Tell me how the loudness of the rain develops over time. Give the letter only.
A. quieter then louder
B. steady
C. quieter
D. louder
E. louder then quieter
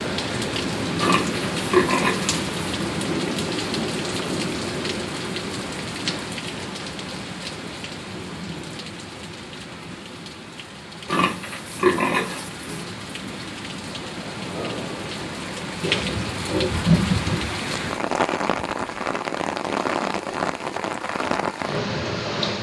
A.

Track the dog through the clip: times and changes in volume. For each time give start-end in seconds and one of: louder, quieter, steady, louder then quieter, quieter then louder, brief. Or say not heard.
not heard.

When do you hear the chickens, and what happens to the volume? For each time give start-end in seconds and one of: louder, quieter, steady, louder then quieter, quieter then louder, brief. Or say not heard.
not heard.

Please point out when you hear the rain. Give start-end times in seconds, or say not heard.
0.0-22.5.